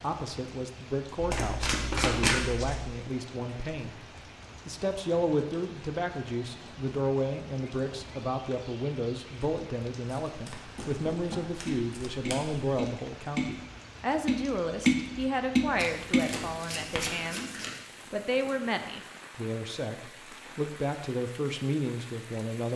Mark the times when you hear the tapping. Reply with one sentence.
The tapping can be heard from 10.8 to 17.1 s.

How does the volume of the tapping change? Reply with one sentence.
The volume of the tapping goes up.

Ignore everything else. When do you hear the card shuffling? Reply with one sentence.
You can hear the card shuffling from 1.2 to 2.9 s, from 10.1 to 12.7 s and from 15.8 to 17.8 s.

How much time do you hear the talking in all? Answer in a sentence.
The talking can be heard for 22 seconds in total.